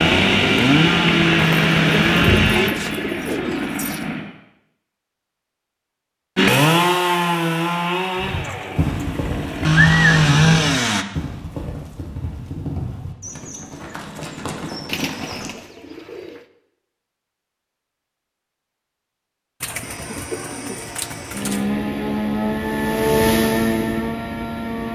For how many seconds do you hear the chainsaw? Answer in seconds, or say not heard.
14 s.